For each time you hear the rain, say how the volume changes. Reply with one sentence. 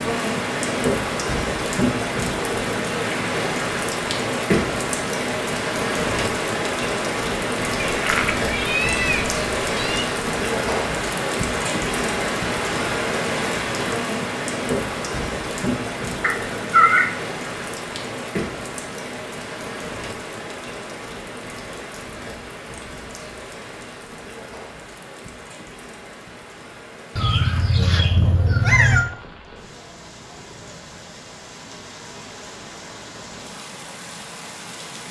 The rain can be heard from 0.0 to 35.0 s, getting quieter.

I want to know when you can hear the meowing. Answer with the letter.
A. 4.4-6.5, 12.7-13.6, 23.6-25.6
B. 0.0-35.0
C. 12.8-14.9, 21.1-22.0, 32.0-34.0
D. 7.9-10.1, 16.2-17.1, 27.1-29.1
D.